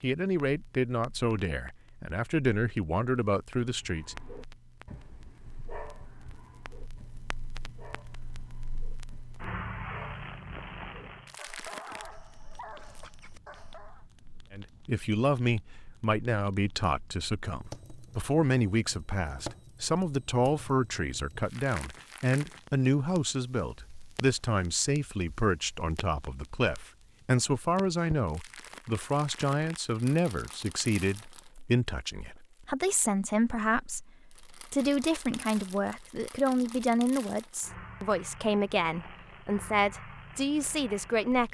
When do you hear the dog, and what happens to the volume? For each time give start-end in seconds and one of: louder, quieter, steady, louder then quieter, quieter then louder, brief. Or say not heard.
3.8-14.1 quieter then louder.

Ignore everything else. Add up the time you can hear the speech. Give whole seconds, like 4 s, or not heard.
31 s.